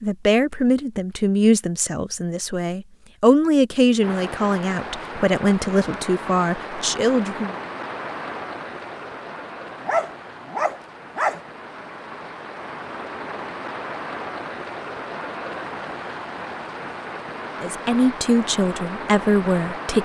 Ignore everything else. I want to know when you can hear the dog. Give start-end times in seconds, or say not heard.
9.8-11.4.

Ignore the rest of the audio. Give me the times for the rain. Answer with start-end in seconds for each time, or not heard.
4.0-19.9.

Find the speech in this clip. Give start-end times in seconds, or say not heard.
0.0-7.5, 17.6-19.9.